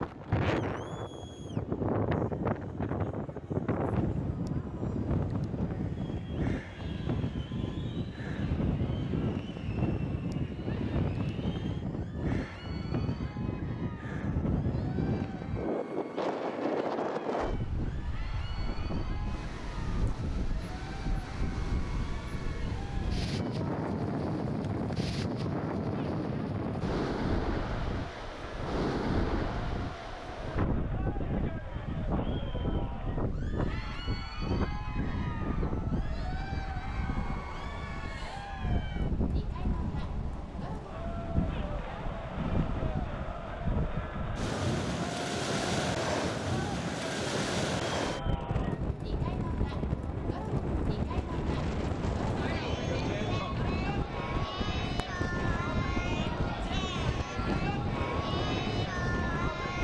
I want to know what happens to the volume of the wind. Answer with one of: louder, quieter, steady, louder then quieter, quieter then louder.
steady.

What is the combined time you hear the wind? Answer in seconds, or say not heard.
60 s.